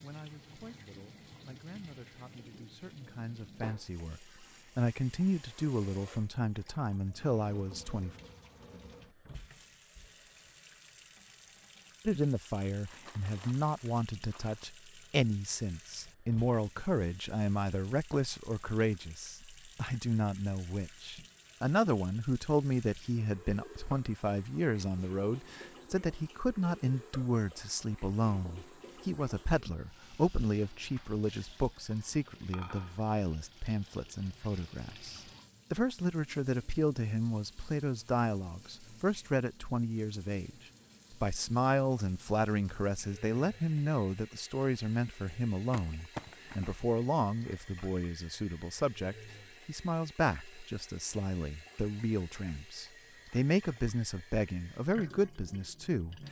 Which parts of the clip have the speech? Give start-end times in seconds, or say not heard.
0.0-8.2, 12.1-40.5, 41.1-56.2.